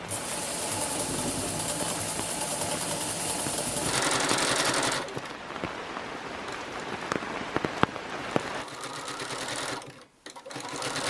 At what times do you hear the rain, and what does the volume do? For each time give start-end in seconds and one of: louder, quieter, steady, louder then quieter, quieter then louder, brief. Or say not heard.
0.0-8.7 louder.